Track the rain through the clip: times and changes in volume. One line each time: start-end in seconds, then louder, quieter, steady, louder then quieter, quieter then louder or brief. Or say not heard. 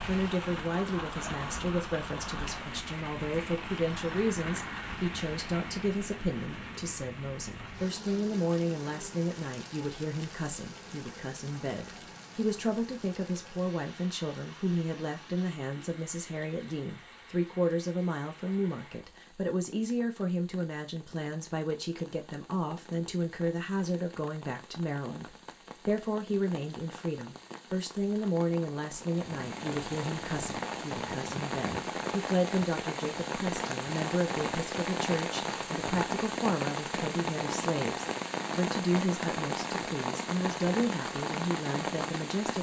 0.0-42.5 quieter then louder.